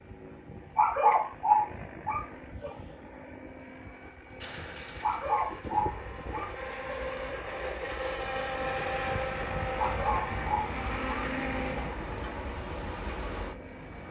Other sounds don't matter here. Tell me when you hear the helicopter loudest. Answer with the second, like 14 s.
9 s.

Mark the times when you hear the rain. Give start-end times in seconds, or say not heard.
4.4-14.0.